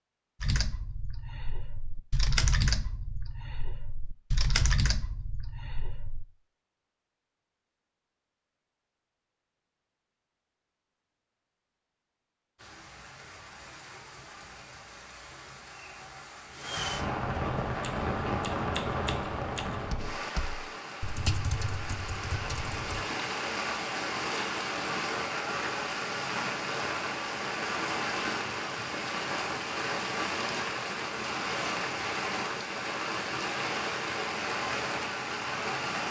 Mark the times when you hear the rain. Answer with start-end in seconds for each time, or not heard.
12.6-36.0.